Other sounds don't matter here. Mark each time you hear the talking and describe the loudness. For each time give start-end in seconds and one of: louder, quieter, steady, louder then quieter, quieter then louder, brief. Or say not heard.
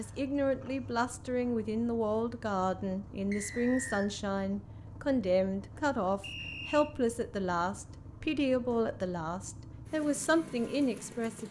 0.0-11.4 steady.